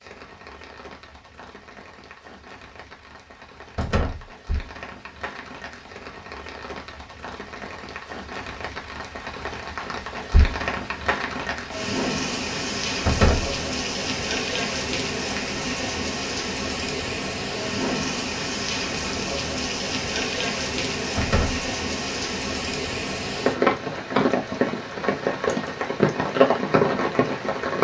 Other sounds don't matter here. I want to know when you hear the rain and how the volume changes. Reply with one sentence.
You can hear the rain from 0.0 to 27.7 s, getting louder.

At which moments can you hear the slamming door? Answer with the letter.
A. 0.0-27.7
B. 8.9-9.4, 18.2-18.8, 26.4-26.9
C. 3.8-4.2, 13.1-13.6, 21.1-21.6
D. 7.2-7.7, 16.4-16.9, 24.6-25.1
C.